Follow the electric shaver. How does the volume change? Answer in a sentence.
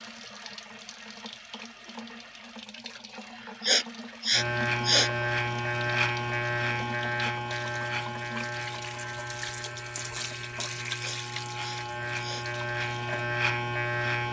The volume of the electric shaver goes down, then up.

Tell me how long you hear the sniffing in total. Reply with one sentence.
You can hear the sniffing for 3 seconds altogether.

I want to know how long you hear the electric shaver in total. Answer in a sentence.
The electric shaver can be heard for 10 seconds in total.